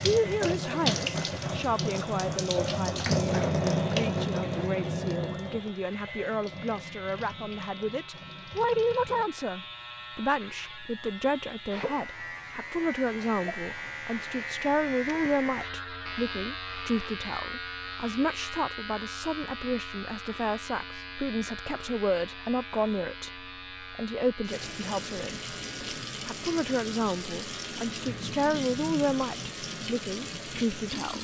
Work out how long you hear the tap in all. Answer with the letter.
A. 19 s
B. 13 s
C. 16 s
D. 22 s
C.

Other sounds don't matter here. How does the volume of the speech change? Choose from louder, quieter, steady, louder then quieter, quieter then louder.
steady.